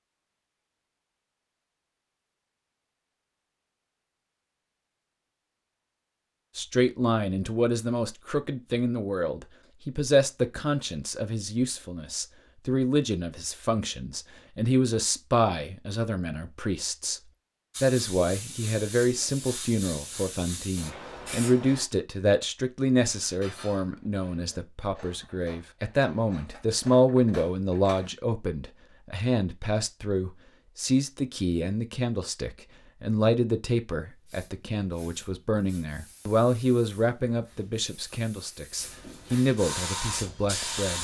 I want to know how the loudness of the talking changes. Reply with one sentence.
The volume of the talking stays about the same.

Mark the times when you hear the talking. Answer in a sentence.
You can hear the talking from 6.5 to 17.2 s and from 17.8 to 40.9 s.